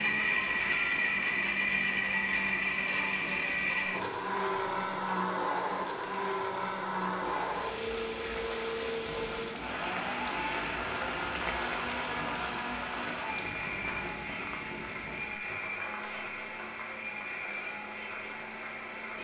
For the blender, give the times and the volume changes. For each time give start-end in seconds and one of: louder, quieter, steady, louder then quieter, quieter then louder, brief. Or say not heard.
0.0-19.1 quieter.